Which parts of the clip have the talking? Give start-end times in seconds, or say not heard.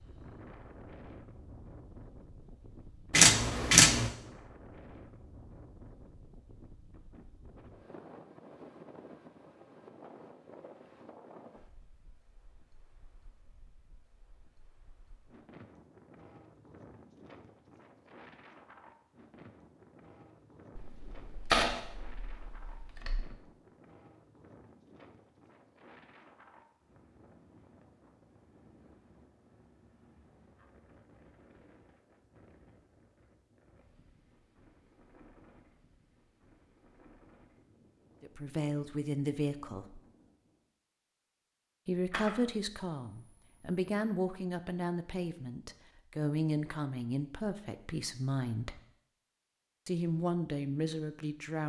38.2-40.0, 41.9-48.8, 49.9-51.6.